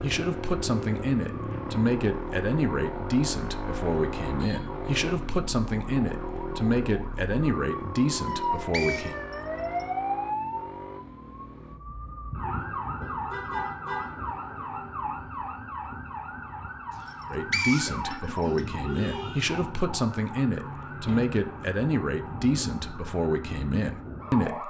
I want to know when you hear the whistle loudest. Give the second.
18 s.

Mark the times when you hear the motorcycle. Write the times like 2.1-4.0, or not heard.
0.0-11.8.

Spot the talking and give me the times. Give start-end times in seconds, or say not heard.
0.0-9.2, 17.3-24.6.